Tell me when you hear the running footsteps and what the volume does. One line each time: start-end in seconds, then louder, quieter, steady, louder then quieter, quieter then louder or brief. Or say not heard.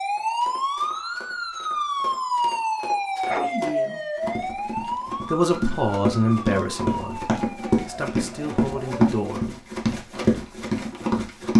0.1-11.5 louder.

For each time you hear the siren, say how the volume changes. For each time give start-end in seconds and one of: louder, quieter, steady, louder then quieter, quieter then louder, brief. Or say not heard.
0.0-9.1 quieter.